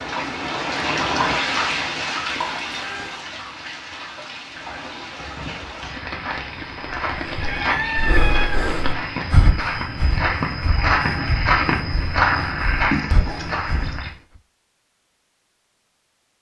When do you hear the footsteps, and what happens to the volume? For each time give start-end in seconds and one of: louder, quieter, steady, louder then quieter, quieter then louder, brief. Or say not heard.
5.8-14.1 louder.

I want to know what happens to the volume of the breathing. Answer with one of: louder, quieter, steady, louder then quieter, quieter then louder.
quieter then louder.